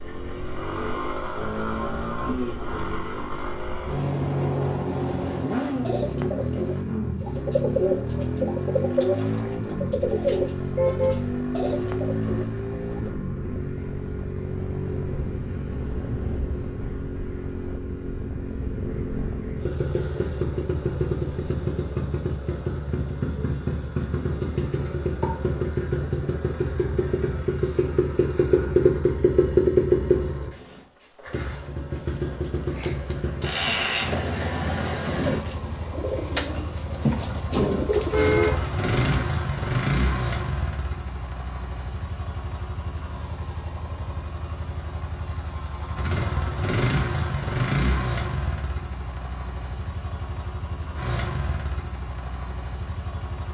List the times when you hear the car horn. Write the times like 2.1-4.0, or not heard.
10.2-11.2, 38.0-38.7.